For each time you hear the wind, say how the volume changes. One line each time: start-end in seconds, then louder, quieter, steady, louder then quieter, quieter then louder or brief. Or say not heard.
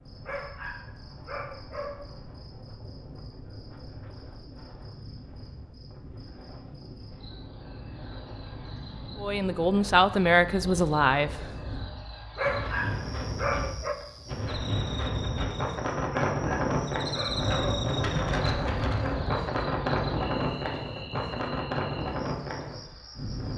0.0-23.5 louder.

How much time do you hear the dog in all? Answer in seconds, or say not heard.
5 s.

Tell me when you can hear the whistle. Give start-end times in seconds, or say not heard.
not heard.